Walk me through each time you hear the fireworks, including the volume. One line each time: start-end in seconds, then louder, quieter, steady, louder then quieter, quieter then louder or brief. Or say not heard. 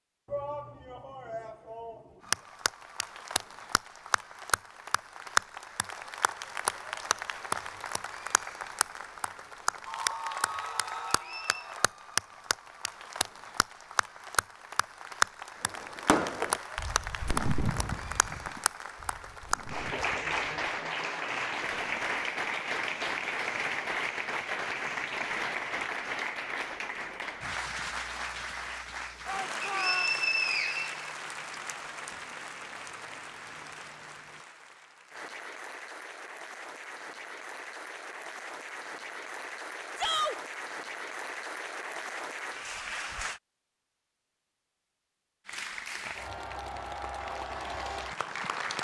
15.7-25.5 quieter.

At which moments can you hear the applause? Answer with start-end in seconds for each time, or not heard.
2.2-43.4, 45.5-48.7.